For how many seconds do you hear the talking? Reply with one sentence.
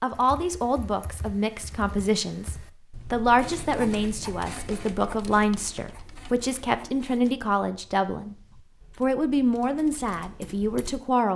The talking can be heard for 11 seconds in total.